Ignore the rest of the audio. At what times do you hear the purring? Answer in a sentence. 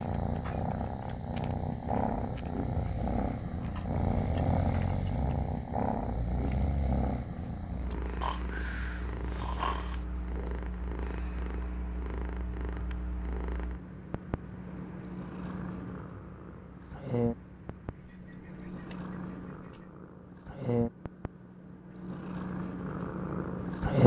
The purring can be heard from 0.0 to 24.0 s.